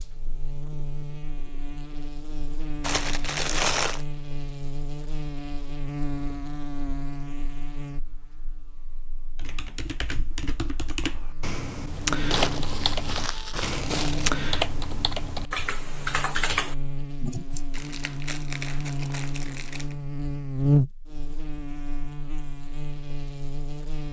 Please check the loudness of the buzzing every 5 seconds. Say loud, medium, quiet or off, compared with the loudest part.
medium, medium, medium, medium, loud.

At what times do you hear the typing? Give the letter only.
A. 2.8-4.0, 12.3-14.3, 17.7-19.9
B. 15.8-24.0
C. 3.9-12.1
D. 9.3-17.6
D.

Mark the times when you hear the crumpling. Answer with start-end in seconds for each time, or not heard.
2.8-4.0, 12.3-14.3, 17.7-19.9.